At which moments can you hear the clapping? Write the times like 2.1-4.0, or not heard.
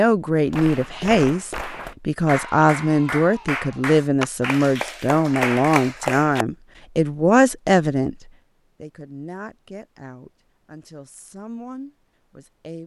0.5-6.5.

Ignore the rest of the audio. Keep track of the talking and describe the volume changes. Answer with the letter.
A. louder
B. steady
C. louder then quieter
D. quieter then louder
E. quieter
E.